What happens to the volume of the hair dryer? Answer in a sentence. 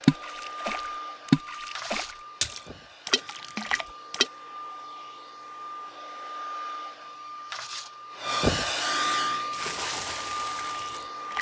The volume of the hair dryer goes down, then up.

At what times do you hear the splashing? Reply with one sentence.
The splashing can be heard from 0.0 to 4.3 s and from 9.5 to 11.3 s.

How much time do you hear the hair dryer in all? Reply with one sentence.
You can hear the hair dryer for 11 seconds altogether.